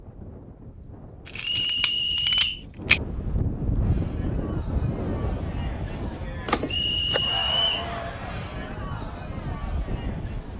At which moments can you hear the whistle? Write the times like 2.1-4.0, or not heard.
1.4-2.6, 6.7-7.9.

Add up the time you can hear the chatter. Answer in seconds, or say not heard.
7 s.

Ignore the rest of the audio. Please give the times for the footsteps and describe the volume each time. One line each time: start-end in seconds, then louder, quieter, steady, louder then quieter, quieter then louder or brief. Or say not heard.
not heard.